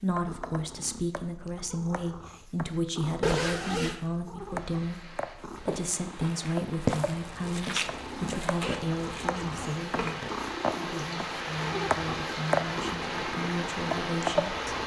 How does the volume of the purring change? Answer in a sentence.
The loudness of the purring goes up.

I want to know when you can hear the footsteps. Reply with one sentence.
You can hear the footsteps from 5.4 to 9.3 s.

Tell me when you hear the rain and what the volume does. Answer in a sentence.
The rain can be heard from 4.4 to 14.8 s, getting louder.